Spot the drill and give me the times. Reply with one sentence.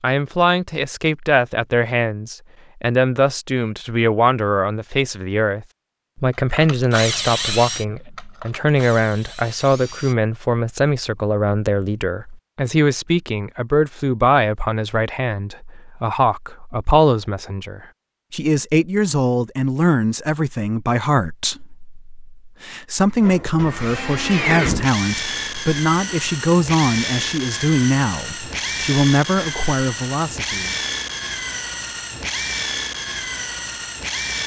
The drill can be heard from 6.3 to 10.2 s and from 23.1 to 34.4 s.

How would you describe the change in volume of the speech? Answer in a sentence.
The volume of the speech stays about the same.